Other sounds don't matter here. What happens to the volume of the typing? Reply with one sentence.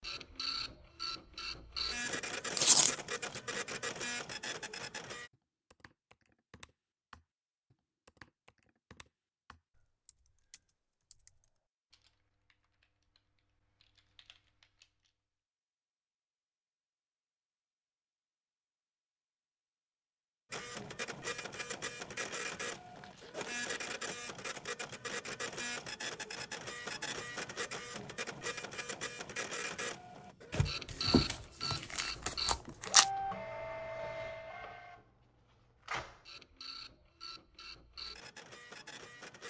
The loudness of the typing goes down.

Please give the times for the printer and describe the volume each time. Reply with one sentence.
The printer can be heard from 0.0 to 5.3 s, at a steady volume; and from 20.5 to 39.4 s, getting quieter.